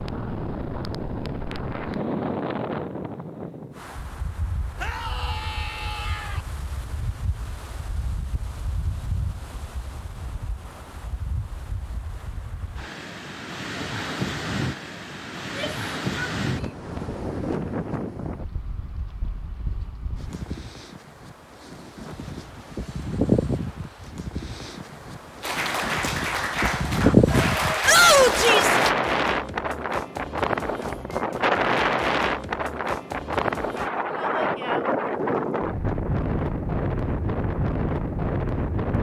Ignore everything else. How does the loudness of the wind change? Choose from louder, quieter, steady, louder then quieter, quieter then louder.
louder.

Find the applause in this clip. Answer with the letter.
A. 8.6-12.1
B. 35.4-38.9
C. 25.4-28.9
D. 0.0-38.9
C.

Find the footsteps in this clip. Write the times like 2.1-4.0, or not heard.
not heard.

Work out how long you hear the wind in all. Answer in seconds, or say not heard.
39 s.